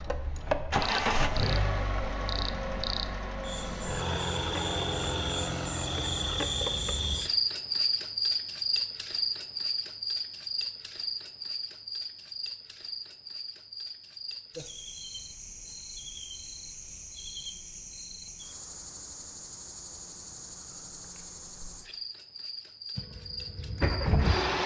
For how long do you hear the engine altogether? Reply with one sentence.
The engine can be heard for 9 seconds in total.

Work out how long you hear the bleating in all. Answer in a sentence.
The bleating can't be heard in this clip.